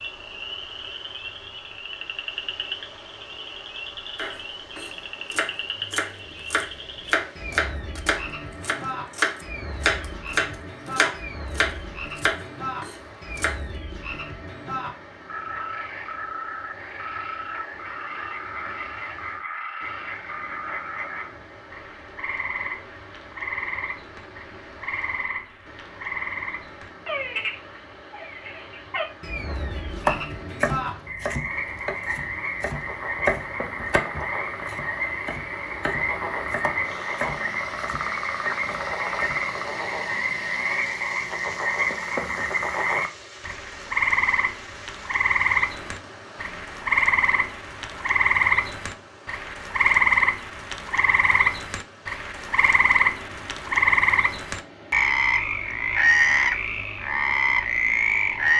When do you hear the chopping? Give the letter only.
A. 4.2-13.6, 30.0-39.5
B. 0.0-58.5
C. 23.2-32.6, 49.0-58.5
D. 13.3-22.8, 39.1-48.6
A.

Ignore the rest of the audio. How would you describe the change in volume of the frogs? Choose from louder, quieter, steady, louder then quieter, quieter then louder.
louder.